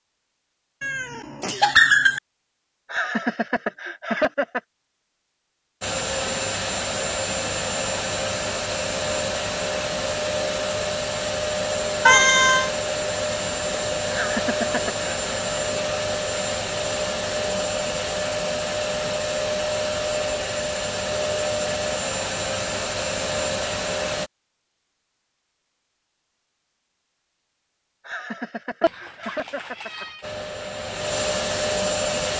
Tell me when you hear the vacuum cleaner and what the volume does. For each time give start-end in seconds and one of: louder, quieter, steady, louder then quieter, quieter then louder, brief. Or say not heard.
5.8-24.3 steady
30.2-32.3 brief.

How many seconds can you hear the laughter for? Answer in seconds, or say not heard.
5 s.